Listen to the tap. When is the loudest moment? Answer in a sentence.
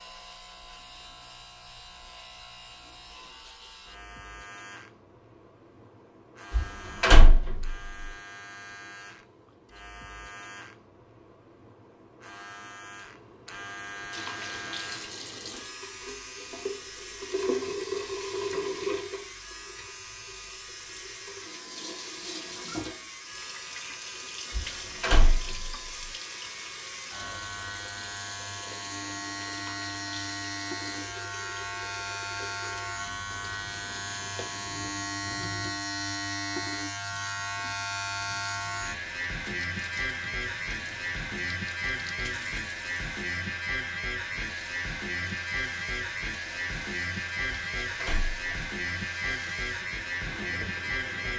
The loudest moment of the tap is at 18 seconds.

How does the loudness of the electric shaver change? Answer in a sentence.
The loudness of the electric shaver goes up.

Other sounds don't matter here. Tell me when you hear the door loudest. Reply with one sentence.
The loudest moment of the door is at 7 seconds.